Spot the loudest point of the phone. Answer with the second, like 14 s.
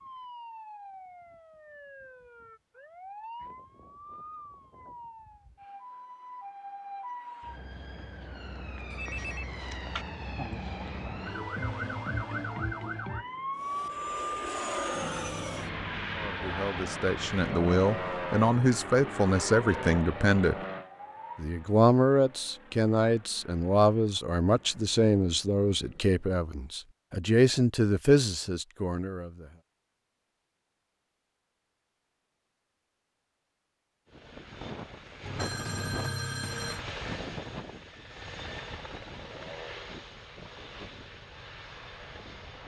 36 s.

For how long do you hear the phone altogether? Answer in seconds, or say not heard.
3 s.